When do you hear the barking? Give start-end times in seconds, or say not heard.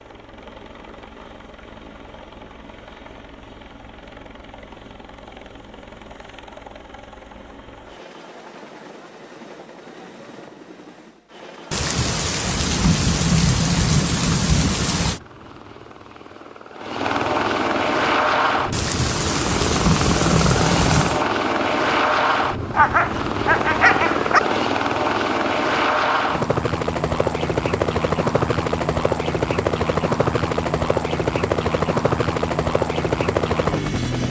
22.7-24.4.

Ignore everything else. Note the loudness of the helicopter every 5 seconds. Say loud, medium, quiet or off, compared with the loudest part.
quiet, quiet, quiet, loud, loud, loud, loud.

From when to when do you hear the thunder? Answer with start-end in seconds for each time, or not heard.
11.7-15.2, 18.7-21.2.